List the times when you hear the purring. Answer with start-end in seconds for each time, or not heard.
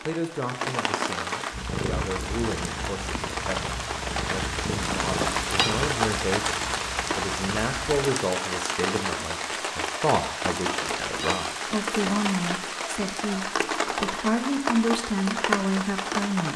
1.5-8.0.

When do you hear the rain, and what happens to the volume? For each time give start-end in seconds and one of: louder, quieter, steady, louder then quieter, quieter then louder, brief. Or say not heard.
0.0-16.5 steady.